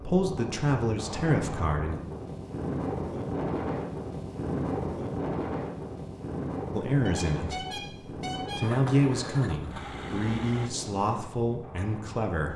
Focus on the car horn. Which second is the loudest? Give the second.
8 s.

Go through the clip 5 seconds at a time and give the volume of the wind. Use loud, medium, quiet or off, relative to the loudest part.
loud, loud, medium.